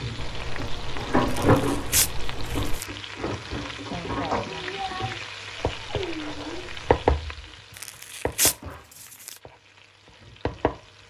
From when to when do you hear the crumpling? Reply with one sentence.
You can hear the crumpling from 1.3 to 2.9 s and from 7.8 to 9.3 s.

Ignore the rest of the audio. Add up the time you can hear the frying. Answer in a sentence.
You can hear the frying for 11 seconds altogether.